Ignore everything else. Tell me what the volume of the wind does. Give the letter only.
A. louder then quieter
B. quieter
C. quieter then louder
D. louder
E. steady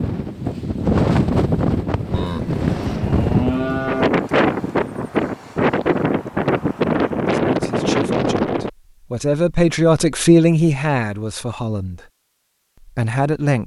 E.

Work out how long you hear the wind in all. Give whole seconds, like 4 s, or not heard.
9 s.